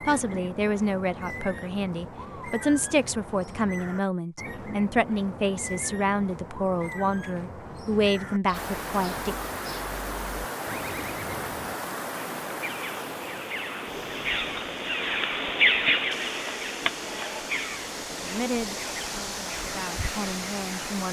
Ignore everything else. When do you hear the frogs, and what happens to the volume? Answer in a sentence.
The frogs can't be heard in this clip.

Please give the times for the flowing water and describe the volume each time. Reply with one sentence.
You can hear the flowing water from 8.5 to 21.0 s, getting quieter then louder.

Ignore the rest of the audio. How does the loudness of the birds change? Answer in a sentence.
The loudness of the birds goes up, then down.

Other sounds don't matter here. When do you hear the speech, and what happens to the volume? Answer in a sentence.
You can hear the speech from 0.1 to 9.3 s, at a steady volume; and briefly from 18.1 to 21.0 s.